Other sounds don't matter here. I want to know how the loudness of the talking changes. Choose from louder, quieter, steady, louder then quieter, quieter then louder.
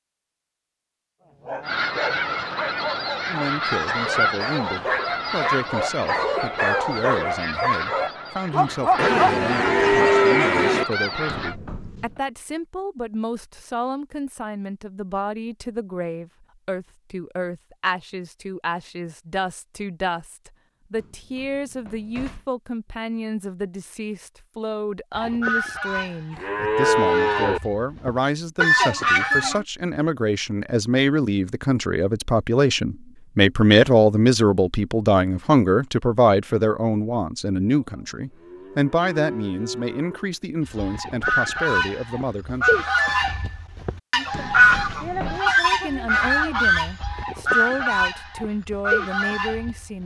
louder then quieter.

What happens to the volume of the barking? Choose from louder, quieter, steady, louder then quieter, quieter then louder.
louder.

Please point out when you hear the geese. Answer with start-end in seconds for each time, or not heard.
1.6-11.6, 25.1-29.6, 40.6-50.0.